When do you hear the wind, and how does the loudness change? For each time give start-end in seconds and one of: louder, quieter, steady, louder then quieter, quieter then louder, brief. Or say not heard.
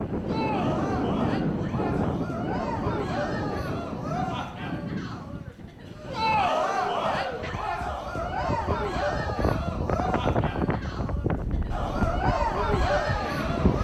0.0-13.7 quieter then louder.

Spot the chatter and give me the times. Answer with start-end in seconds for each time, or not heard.
0.1-13.7.